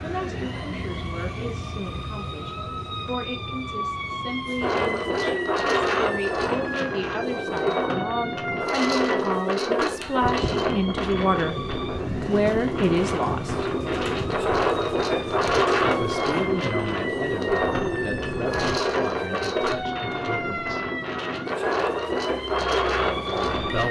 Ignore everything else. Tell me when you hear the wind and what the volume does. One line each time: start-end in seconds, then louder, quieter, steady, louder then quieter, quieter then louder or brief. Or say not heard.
4.6-23.8 steady.